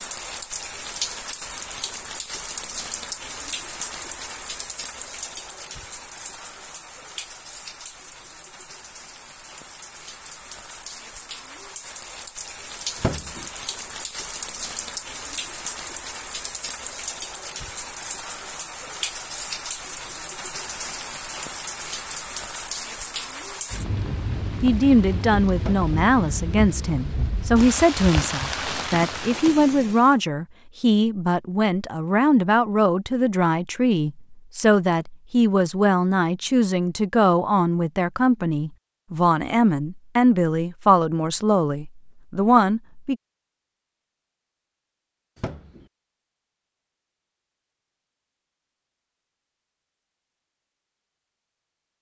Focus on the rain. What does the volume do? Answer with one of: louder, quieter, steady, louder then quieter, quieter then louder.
quieter then louder.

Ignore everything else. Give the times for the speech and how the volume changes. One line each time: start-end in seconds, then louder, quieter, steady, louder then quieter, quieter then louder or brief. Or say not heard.
24.6-43.1 steady.